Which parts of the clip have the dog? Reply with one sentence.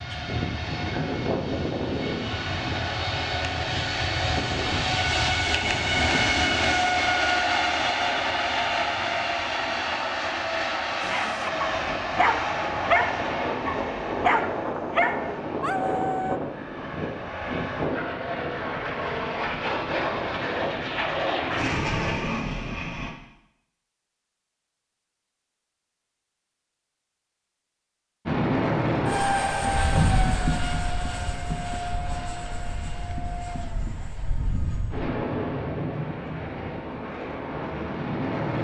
The dog can be heard from 11.0 to 16.4 s.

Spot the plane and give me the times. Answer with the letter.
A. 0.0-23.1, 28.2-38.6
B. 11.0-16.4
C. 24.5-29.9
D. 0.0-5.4
A.